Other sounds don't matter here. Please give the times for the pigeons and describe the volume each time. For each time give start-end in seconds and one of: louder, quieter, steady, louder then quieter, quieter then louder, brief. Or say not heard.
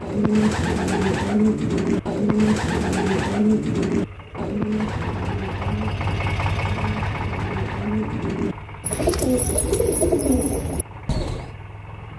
0.0-11.6 quieter then louder.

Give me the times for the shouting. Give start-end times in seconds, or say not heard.
not heard.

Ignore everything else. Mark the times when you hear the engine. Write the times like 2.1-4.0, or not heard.
0.0-12.1.